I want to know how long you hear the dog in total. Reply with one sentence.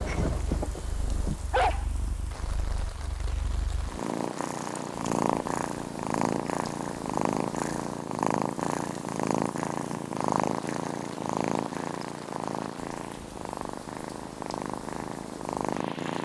The dog can be heard for 2 seconds in total.